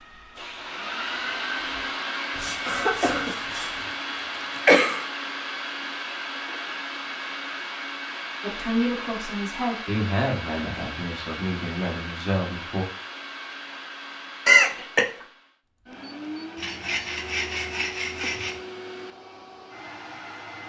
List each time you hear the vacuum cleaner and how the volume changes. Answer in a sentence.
You can hear the vacuum cleaner from 0.0 to 20.6 s, getting quieter.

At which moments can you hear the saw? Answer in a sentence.
The saw can be heard from 2.3 to 3.9 s and from 16.6 to 18.6 s.